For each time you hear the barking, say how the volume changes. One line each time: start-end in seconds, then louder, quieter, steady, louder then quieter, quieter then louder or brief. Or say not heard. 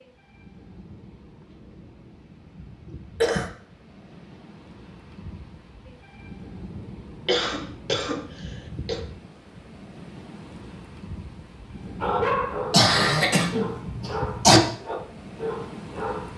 12.0-16.3 steady.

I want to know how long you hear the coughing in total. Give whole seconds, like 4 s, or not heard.
4 s.